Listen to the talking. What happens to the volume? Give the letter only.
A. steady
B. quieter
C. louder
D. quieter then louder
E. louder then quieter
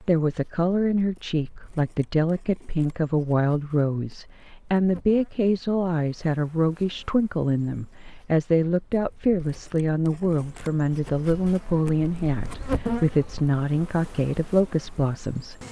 A.